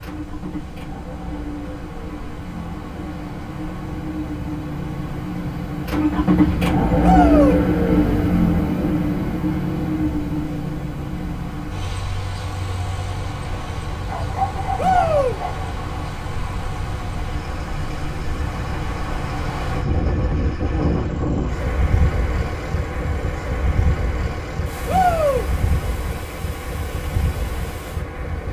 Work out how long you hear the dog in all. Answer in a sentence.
You can hear the dog for 2 seconds altogether.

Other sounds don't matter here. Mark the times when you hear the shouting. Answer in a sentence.
The shouting can be heard from 7.0 to 7.6 s, from 14.8 to 15.3 s and from 24.9 to 25.4 s.